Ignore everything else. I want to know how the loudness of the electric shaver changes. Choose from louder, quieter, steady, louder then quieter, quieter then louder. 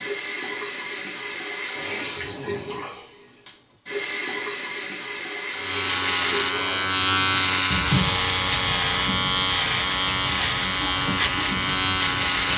steady.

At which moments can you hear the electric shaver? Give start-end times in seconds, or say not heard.
5.5-12.5.